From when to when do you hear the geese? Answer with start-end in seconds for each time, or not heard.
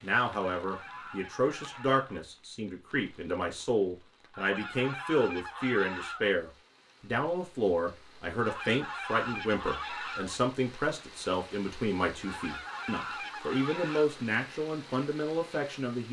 0.5-2.2, 4.3-6.3, 8.3-10.4, 12.2-14.1.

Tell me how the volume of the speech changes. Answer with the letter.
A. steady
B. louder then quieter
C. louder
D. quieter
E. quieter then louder
A.